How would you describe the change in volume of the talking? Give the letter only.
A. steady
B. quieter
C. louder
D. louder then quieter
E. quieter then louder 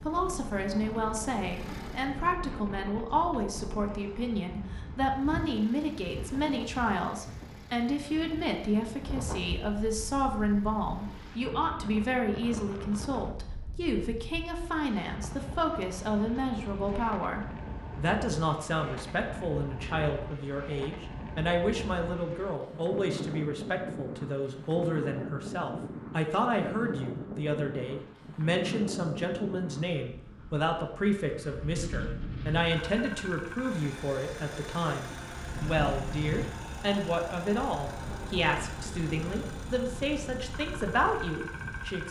A.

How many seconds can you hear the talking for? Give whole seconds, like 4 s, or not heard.
42 s.